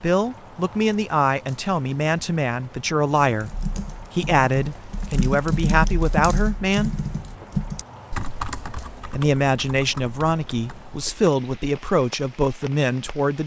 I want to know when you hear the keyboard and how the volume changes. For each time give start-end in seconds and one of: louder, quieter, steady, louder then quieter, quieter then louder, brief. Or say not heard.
3.2-11.3 louder then quieter.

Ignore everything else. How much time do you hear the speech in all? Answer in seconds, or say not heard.
11 s.